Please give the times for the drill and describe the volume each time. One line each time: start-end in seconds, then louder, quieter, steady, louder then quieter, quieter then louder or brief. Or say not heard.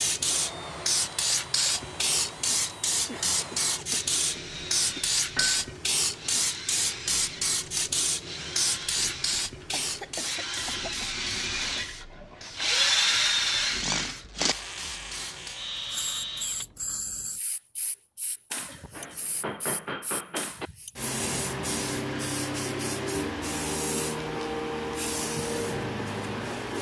0.0-16.7 louder.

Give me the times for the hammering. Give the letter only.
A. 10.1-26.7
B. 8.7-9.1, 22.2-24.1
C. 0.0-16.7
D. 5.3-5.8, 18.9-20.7
D.